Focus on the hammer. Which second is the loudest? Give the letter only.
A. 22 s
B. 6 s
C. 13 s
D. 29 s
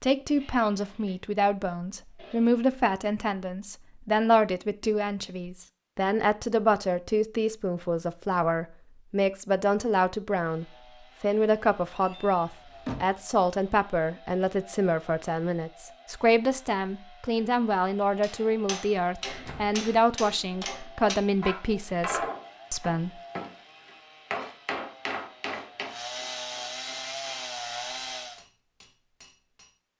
A.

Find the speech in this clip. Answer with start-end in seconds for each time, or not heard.
0.0-23.1.